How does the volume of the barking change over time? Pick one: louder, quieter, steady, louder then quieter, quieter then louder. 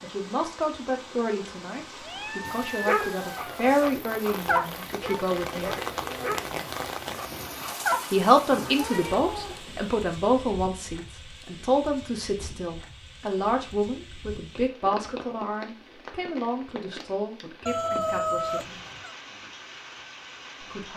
quieter.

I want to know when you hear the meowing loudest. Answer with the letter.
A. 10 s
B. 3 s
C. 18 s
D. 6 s
C.